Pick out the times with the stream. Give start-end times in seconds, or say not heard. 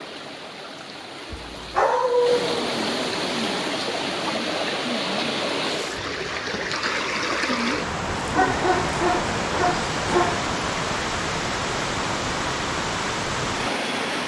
0.0-14.2.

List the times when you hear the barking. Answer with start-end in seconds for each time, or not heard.
1.3-2.6, 8.2-10.5.